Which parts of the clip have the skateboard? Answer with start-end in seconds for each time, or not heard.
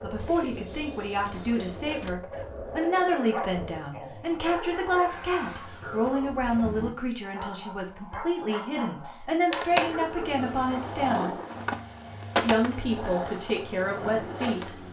0.0-3.9, 9.5-14.8.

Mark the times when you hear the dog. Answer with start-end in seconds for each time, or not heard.
1.9-11.0.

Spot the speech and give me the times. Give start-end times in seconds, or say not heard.
0.0-11.3, 12.3-14.8.